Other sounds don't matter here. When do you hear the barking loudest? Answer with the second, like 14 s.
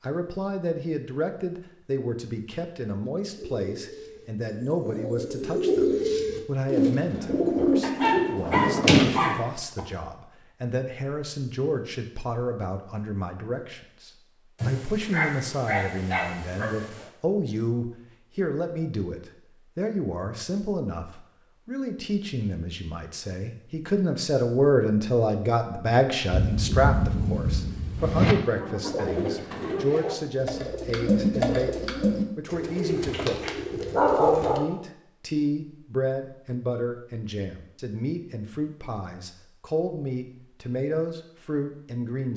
34 s.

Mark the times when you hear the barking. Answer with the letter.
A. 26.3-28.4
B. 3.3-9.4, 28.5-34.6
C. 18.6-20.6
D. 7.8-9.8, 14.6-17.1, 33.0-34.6
D.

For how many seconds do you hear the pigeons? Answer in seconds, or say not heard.
12 s.